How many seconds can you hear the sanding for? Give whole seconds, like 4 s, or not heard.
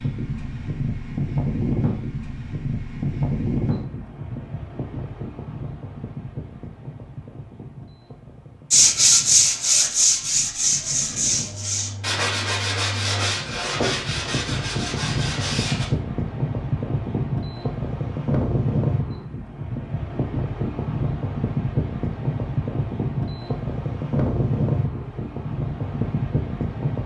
7 s.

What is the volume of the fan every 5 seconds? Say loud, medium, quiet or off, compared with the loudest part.
loud, quiet, medium, loud, loud, loud.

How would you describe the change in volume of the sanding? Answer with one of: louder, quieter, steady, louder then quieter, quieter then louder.
quieter.